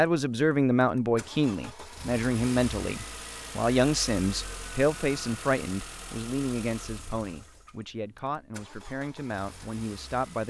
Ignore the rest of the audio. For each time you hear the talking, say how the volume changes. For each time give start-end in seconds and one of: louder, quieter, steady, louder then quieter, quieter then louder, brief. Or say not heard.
0.0-10.4 quieter.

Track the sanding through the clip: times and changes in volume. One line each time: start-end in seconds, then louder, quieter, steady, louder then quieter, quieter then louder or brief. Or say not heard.
not heard.